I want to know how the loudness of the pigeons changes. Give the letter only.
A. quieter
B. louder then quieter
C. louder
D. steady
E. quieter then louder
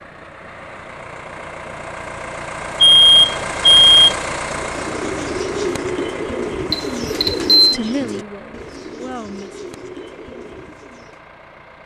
A.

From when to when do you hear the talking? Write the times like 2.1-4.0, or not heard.
7.5-9.6.